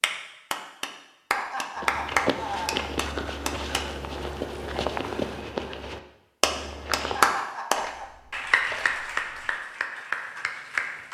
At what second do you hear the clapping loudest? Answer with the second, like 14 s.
7 s.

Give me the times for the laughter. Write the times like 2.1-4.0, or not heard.
1.3-2.9, 7.2-8.1.